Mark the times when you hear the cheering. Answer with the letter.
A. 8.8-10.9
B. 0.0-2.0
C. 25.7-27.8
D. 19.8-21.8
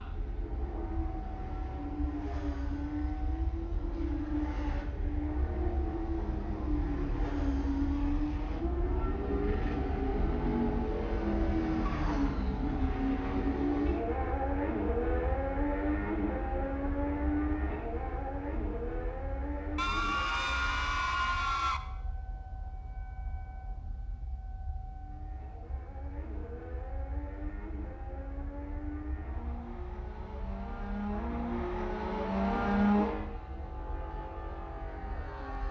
D.